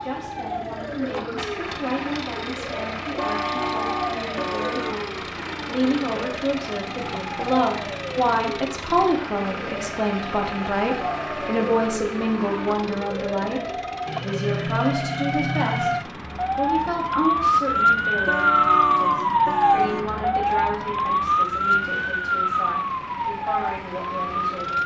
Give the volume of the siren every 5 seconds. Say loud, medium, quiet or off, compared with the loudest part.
quiet, quiet, medium, loud, loud.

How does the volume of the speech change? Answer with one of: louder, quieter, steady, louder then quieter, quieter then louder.
louder then quieter.